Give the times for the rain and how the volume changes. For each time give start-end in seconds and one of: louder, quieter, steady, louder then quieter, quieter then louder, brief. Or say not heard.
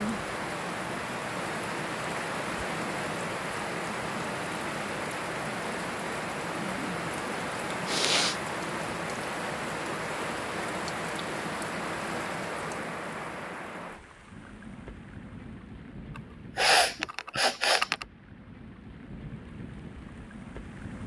0.0-21.0 quieter.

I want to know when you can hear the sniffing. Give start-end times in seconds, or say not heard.
7.8-8.3, 16.1-18.1.